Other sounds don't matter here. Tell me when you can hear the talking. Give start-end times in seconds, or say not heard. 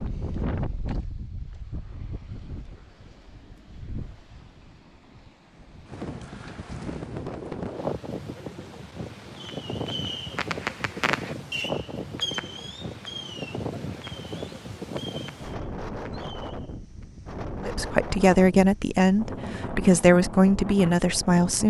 17.6-21.6.